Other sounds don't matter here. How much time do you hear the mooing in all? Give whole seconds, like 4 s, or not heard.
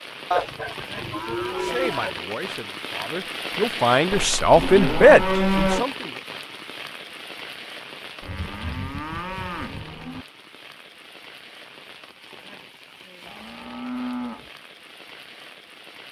7 s.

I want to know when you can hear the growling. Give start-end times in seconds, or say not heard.
not heard.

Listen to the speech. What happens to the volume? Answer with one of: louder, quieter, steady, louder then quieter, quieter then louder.
louder.